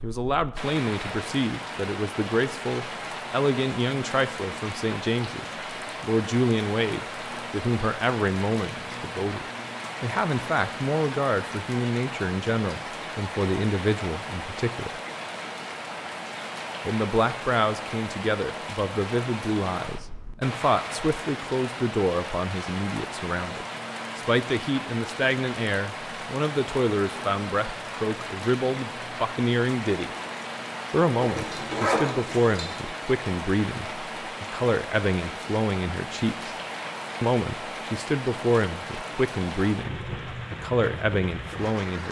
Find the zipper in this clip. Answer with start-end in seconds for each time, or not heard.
31.2-32.8.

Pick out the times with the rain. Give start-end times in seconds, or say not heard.
0.0-42.0.